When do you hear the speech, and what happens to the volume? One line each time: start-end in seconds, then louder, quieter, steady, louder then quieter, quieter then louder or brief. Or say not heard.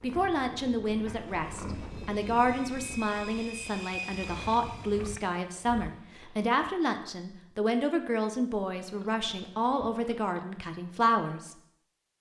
0.0-11.6 steady.